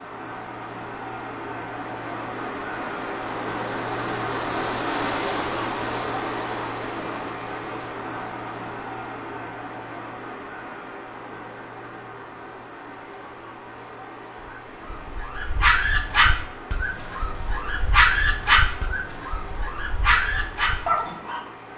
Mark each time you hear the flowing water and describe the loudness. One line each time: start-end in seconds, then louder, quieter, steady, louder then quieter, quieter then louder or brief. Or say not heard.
0.0-21.7 quieter.